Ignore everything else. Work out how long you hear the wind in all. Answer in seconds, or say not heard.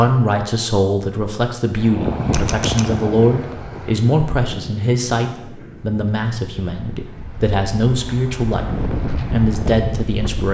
9 s.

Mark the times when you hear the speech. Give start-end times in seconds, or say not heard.
0.0-10.4.